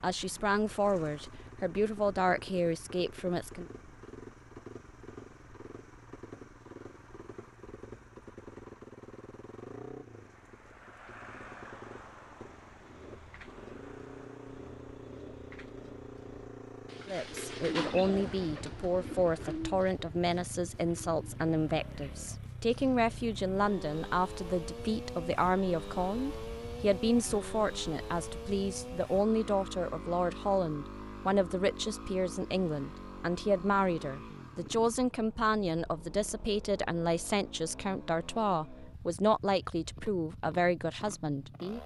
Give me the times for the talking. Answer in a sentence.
The talking can be heard from 0.0 to 3.6 s and from 17.1 to 41.8 s.